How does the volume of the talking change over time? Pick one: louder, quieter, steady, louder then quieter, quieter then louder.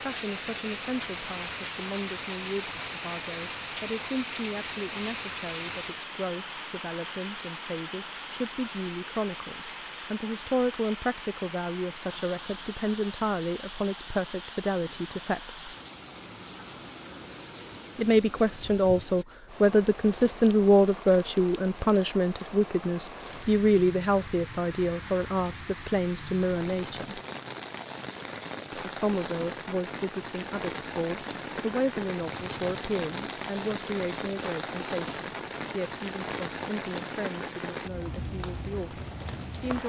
louder then quieter.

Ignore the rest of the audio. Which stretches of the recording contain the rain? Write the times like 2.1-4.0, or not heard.
0.0-39.8.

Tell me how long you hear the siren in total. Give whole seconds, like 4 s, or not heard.
not heard.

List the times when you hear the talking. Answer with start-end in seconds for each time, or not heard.
0.0-15.6, 17.9-27.2, 28.7-39.8.